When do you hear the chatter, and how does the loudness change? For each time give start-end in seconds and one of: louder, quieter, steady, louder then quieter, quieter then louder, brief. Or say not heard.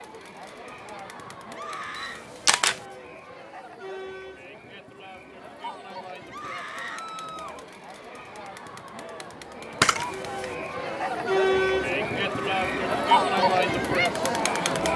0.0-14.9 louder.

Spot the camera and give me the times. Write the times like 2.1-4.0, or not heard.
1.9-2.8, 9.8-10.5.